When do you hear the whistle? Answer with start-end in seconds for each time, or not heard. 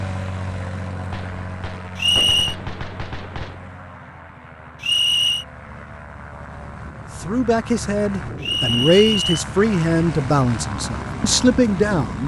1.9-2.5, 4.8-5.5, 8.4-9.3.